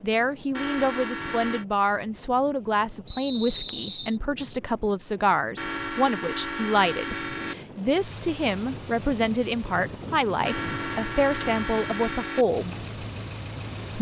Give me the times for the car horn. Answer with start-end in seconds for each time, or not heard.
0.5-1.6, 5.5-7.5, 10.4-12.4.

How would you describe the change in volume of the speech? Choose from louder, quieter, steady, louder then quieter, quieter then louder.
steady.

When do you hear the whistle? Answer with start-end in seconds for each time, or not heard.
3.0-4.2.